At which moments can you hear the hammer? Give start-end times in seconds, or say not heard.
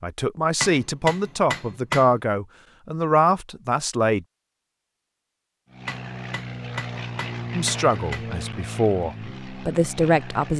0.6-2.1, 5.8-8.3.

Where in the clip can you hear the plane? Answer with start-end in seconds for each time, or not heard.
5.7-10.5.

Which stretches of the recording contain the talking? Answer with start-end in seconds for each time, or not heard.
0.0-4.2, 7.5-10.5.